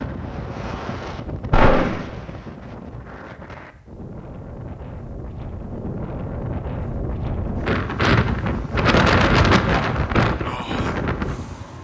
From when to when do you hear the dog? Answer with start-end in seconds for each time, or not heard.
not heard.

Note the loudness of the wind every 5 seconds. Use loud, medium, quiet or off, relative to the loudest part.
quiet, loud, loud.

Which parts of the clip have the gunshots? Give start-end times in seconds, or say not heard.
1.5-2.0.